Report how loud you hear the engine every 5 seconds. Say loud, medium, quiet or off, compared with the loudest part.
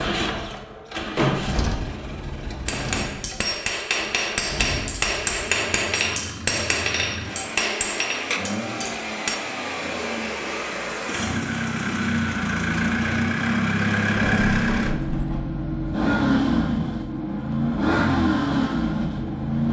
medium, medium, loud, loud.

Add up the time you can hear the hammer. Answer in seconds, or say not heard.
7 s.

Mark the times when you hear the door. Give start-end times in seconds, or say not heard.
1.1-1.6, 14.2-15.4.